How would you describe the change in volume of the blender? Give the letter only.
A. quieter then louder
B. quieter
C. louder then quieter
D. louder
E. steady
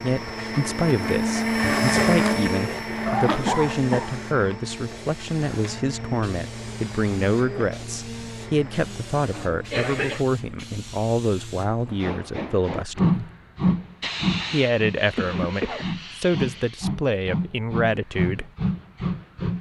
B.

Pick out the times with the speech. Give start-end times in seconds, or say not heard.
0.0-13.3, 14.5-18.5.